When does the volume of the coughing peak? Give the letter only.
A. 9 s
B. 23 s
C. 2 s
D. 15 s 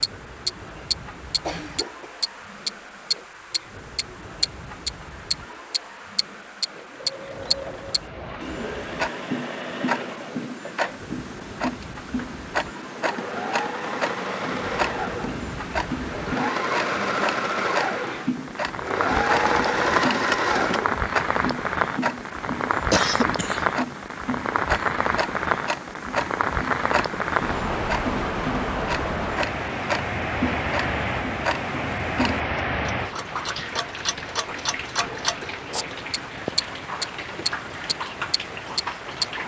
B.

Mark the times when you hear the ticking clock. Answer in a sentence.
The ticking clock can be heard from 0.0 to 39.2 s.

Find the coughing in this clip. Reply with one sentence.
You can hear the coughing from 1.2 to 2.1 s and from 22.9 to 23.6 s.